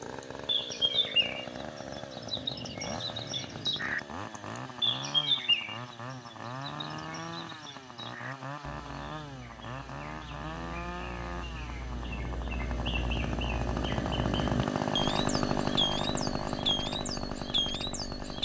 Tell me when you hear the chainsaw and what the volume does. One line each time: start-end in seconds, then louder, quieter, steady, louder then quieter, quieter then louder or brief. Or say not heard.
0.0-18.4 louder.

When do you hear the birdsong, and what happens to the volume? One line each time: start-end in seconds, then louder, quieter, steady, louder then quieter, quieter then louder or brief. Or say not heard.
0.0-18.4 quieter then louder.